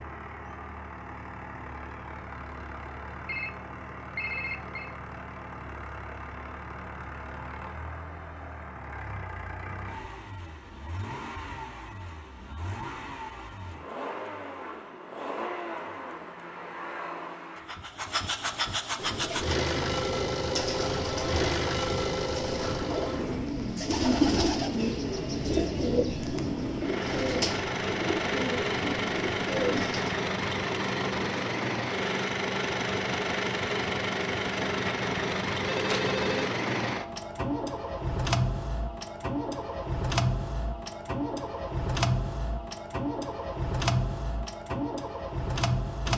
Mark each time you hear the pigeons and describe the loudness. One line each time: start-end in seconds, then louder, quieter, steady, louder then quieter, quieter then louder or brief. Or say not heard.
18.9-30.1 louder then quieter.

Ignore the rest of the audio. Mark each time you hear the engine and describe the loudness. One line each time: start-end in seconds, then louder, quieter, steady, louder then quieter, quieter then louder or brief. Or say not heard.
0.0-46.1 louder.